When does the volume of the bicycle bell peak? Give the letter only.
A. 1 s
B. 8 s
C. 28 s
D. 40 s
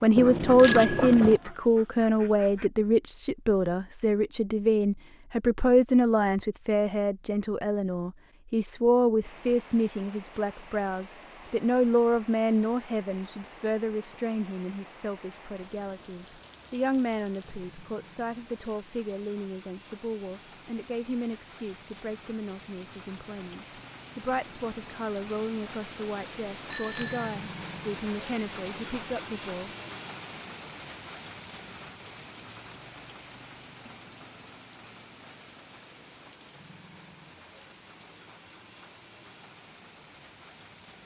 A.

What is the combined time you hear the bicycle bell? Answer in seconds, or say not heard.
2 s.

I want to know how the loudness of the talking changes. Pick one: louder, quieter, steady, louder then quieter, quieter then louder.
quieter.